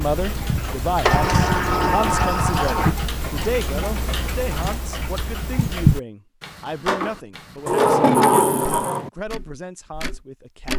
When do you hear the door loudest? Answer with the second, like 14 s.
8 s.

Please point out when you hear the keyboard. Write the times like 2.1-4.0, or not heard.
not heard.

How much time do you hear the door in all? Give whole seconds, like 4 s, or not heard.
3 s.